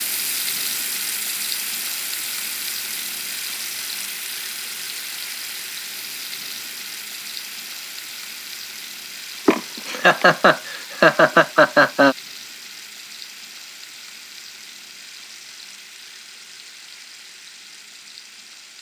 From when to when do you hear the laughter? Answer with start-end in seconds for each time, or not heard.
9.4-12.2.